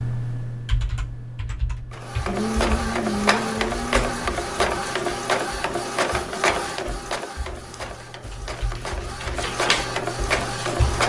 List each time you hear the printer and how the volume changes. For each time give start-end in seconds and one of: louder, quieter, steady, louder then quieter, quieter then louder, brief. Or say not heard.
1.9-11.0 quieter then louder.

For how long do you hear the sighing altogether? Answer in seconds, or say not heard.
2 s.